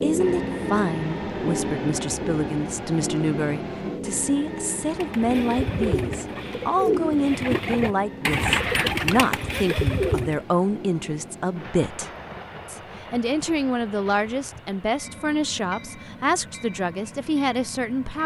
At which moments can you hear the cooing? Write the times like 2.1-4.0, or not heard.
4.8-10.3.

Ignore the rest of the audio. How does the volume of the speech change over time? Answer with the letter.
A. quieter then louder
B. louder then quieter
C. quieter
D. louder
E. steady
E.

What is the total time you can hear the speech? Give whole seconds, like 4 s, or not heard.
18 s.